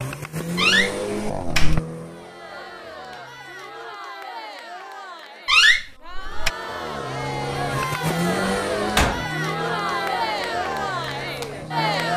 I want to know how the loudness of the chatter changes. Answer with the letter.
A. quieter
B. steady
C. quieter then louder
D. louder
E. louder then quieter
D.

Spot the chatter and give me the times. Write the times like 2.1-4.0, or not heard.
2.0-12.1.